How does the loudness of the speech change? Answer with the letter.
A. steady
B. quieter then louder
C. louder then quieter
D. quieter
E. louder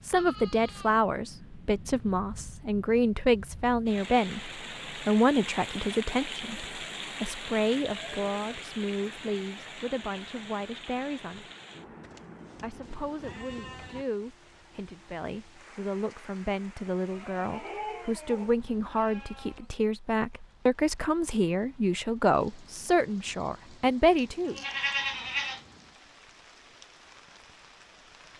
B.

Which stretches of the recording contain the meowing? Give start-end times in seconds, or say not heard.
not heard.